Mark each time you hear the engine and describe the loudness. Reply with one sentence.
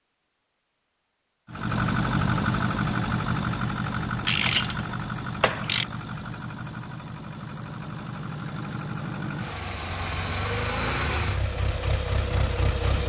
The engine can be heard from 1.4 to 13.0 s, getting quieter then louder.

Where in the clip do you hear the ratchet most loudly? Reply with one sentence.
The loudest moment of the ratchet is at 4 seconds.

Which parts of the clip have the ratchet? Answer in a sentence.
The ratchet can be heard from 3.9 to 5.8 s.